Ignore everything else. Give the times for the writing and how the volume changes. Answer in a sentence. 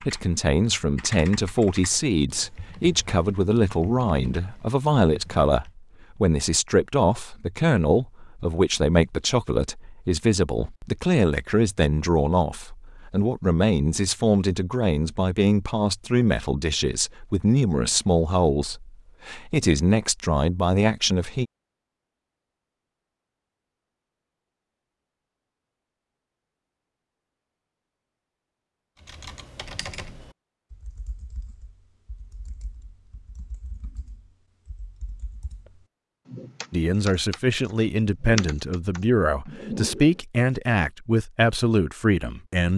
The writing can't be heard in this clip.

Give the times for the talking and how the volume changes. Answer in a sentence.
The talking can be heard from 0.0 to 21.4 s, at a steady volume; and from 36.7 to 42.7 s, at a steady volume.